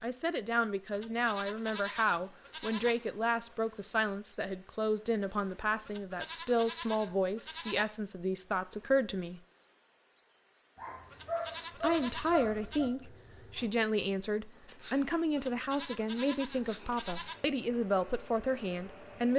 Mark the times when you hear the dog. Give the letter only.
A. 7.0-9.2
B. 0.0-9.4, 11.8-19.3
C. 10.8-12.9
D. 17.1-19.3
C.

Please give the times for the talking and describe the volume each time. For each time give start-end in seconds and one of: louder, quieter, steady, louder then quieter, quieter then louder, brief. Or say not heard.
0.0-9.4 steady
11.8-19.3 steady.